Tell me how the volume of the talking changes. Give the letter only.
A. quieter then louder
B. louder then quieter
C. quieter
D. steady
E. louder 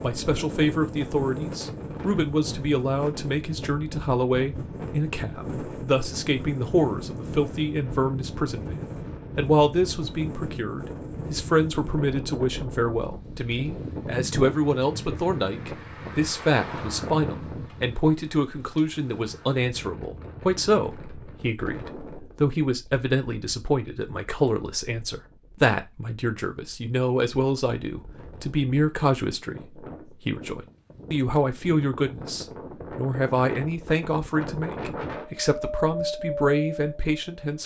D.